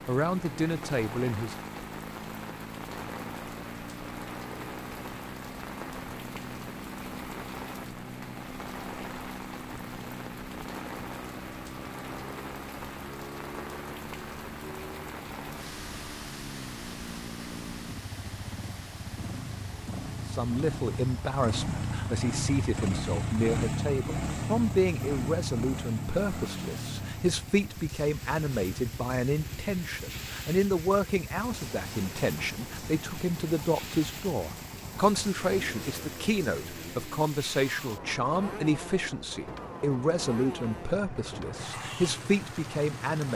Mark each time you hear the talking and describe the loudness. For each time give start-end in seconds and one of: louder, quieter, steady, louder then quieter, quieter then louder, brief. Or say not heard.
0.1-1.6 brief
20.2-43.3 steady.